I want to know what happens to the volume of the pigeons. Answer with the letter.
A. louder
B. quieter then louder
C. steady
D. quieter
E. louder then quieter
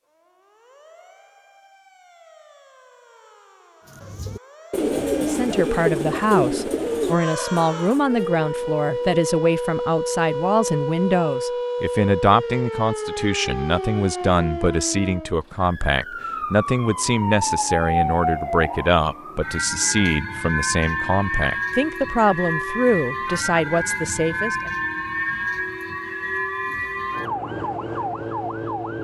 D.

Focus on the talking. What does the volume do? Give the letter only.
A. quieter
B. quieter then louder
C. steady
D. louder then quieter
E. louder
C.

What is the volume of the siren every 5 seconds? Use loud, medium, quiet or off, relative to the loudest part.
quiet, loud, loud, loud, loud, loud.